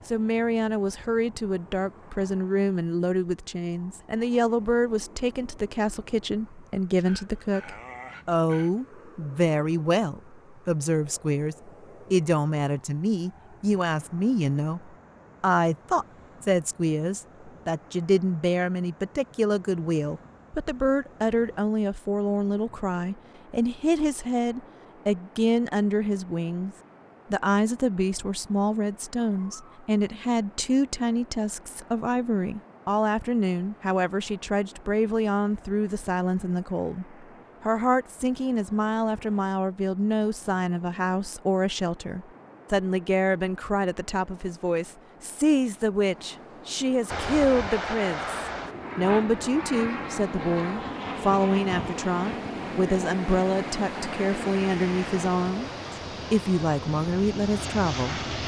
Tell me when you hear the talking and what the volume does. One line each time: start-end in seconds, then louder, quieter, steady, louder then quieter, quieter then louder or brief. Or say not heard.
0.1-55.7 steady
56.3-58.2 brief.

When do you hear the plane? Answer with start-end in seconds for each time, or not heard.
47.0-58.4.